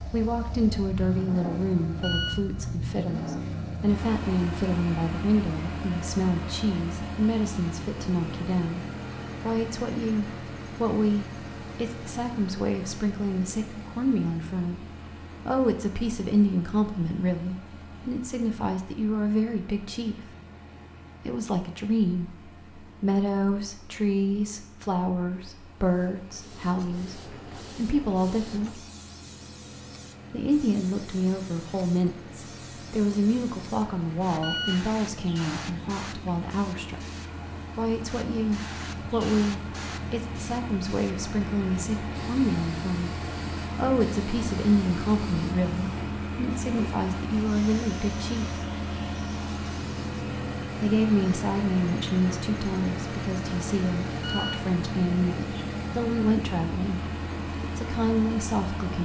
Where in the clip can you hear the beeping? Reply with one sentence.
The beeping can be heard from 1.9 to 2.4 s, from 34.4 to 34.9 s and from 54.1 to 54.7 s.